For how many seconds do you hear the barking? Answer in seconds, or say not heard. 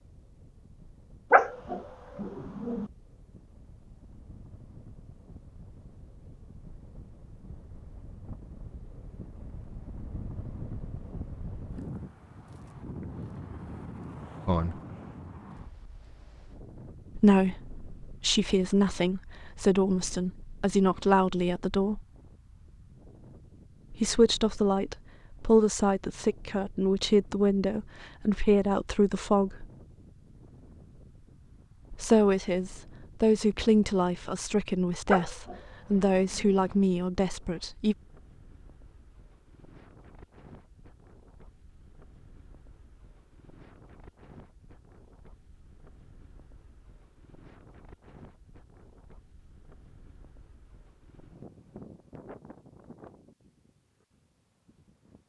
3 s.